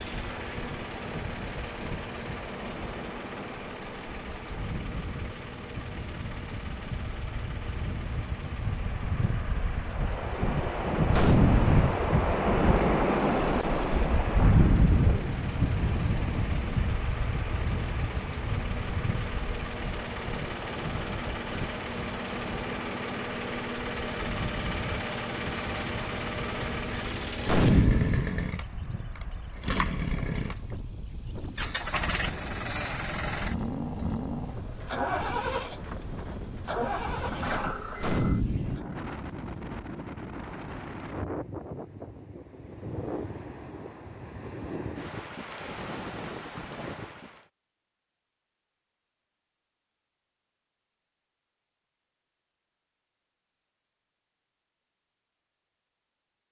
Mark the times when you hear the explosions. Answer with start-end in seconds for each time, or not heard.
11.1-11.9, 27.4-28.2, 38.0-38.8.